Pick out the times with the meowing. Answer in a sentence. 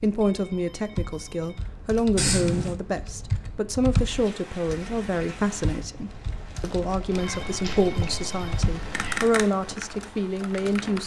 The meowing can be heard from 2.1 to 2.8 s and from 7.1 to 9.3 s.